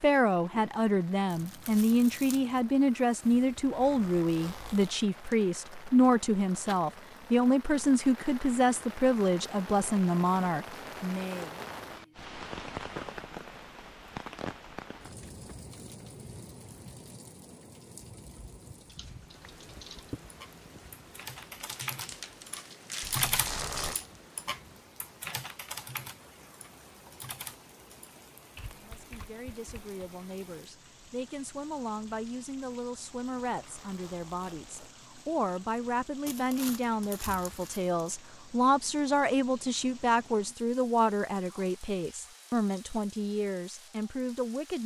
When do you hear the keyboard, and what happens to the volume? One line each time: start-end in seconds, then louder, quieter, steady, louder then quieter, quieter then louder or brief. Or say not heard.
18.8-30.0 louder then quieter.